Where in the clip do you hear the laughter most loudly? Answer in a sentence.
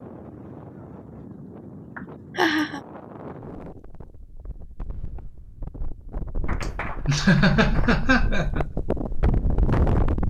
The loudest moment of the laughter is at 7 seconds.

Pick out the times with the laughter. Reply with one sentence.
You can hear the laughter from 2.0 to 2.8 s and from 6.6 to 8.7 s.